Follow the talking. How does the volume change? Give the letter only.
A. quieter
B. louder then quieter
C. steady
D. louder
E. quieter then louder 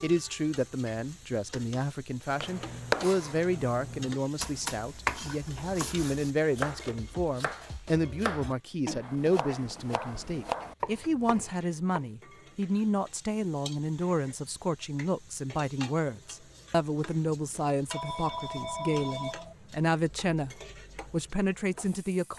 C.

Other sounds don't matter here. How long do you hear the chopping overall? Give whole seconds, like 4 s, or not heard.
10 s.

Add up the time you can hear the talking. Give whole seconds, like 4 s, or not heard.
22 s.